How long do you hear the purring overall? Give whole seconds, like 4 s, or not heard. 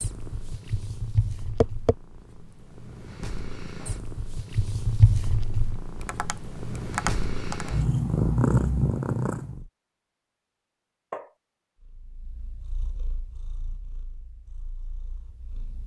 14 s.